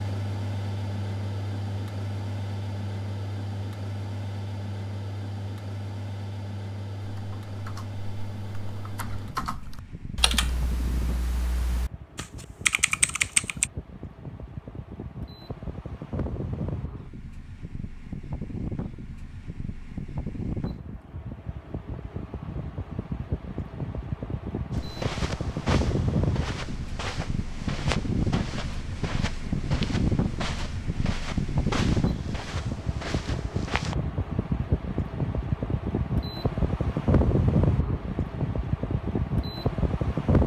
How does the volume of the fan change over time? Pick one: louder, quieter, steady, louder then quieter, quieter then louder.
louder.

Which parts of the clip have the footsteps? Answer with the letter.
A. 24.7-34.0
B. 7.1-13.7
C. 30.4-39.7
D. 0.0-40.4
A.